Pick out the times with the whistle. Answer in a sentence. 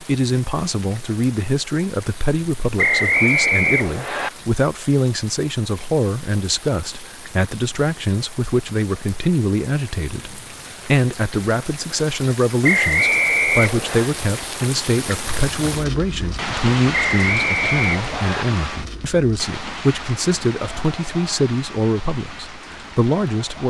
You can hear the whistle from 2.8 to 4.3 s, from 12.6 to 14.1 s and from 16.9 to 18.4 s.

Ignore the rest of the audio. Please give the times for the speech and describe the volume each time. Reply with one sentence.
You can hear the speech from 0.0 to 23.6 s, at a steady volume.